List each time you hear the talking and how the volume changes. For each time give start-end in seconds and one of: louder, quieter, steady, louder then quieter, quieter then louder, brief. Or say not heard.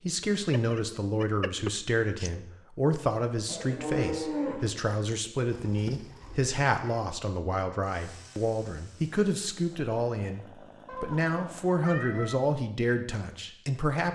0.0-14.0 steady.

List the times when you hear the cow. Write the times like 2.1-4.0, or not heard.
3.5-4.7.